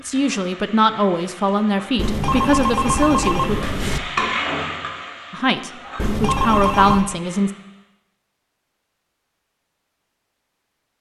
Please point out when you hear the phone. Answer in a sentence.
You can hear the phone from 1.9 to 4.0 s and from 6.0 to 7.0 s.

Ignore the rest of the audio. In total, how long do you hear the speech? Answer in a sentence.
You can hear the speech for 6 seconds altogether.